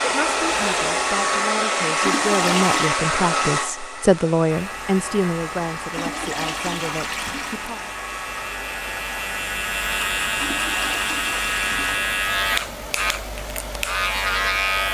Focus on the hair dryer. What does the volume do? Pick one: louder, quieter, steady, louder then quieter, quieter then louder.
quieter.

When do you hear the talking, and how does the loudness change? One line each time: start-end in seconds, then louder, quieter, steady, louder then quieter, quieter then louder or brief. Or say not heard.
0.0-7.8 louder then quieter.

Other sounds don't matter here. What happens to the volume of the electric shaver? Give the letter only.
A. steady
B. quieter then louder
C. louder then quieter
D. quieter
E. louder
E.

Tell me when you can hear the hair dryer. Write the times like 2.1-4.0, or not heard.
0.0-14.8.